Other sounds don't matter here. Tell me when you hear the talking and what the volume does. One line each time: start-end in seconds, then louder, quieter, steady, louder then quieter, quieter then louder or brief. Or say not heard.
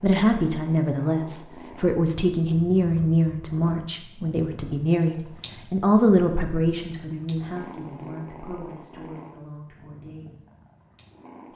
0.0-10.3 quieter.